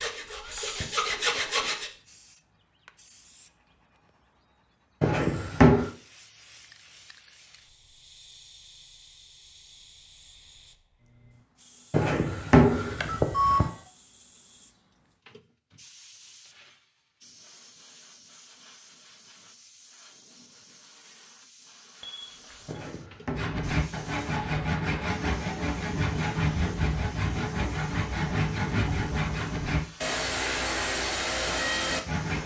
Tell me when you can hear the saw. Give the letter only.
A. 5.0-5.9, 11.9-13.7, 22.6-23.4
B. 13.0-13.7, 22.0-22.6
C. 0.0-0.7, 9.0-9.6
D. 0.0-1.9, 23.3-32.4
D.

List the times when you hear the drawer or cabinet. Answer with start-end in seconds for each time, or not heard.
5.0-5.9, 11.9-13.7, 22.6-23.4.